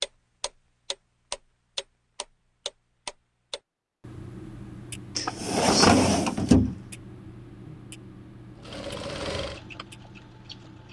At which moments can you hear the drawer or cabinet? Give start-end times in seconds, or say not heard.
5.2-6.8.